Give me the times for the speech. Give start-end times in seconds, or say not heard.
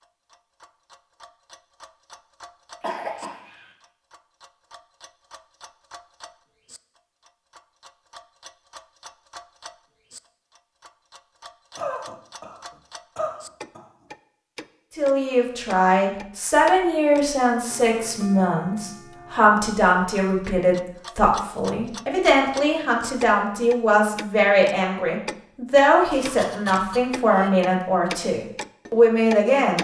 14.9-29.7.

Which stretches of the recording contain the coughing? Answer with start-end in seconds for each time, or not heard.
2.8-3.7, 11.8-13.8, 26.1-27.5.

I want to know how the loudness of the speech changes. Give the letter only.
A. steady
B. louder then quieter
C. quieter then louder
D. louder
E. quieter
A.